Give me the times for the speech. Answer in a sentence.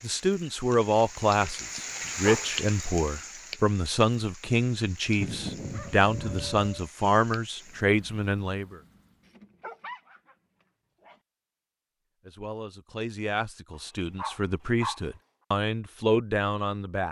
You can hear the speech from 0.0 to 8.8 s and from 12.2 to 17.0 s.